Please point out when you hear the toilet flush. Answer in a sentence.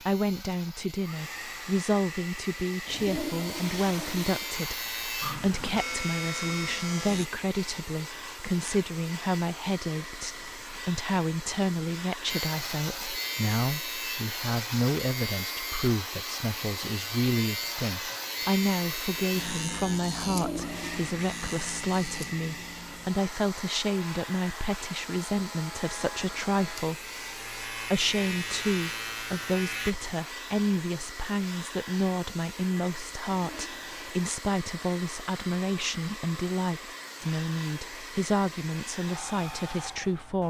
The toilet flush can be heard from 2.9 to 4.5 s, from 20.1 to 21.1 s and from 33.3 to 34.2 s.